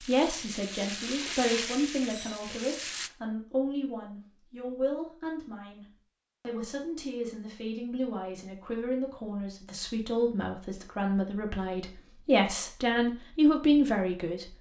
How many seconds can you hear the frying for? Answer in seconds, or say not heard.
3 s.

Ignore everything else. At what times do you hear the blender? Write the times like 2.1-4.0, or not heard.
not heard.